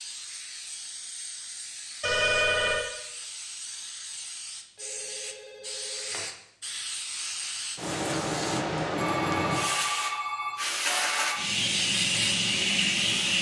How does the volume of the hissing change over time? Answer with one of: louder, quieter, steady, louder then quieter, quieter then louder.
louder.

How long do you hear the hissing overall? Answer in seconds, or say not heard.
13 s.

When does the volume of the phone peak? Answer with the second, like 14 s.
2 s.